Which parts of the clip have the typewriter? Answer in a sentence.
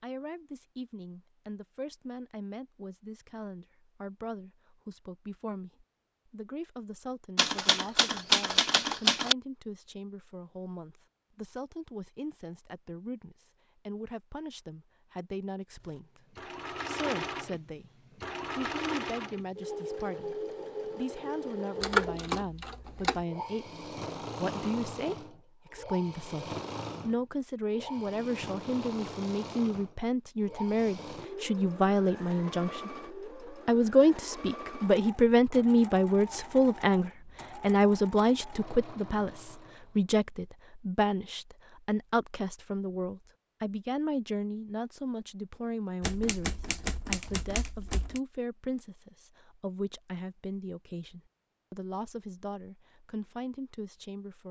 The typewriter can be heard from 7.3 to 9.3 s, from 21.8 to 23.2 s and from 46.0 to 48.2 s.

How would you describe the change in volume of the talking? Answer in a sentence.
The volume of the talking goes up, then down.